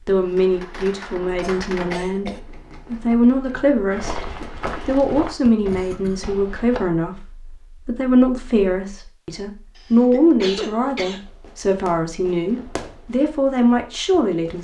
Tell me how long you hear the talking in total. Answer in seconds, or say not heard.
14 s.